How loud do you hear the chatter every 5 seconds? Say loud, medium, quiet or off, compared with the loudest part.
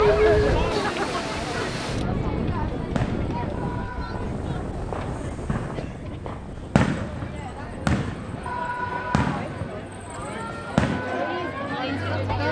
loud, quiet, loud.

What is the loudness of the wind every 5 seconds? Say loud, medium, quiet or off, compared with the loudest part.
loud, medium, off.